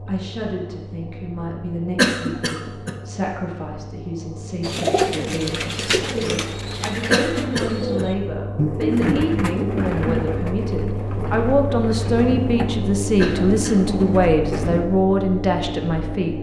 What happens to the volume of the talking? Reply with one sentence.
The volume of the talking goes up.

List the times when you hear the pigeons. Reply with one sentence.
The pigeons can be heard from 4.6 to 14.9 s.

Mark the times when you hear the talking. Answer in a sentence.
The talking can be heard from 0.1 to 16.3 s.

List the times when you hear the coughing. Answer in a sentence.
The coughing can be heard from 1.9 to 3.0 s, from 7.1 to 8.1 s and from 13.2 to 13.8 s.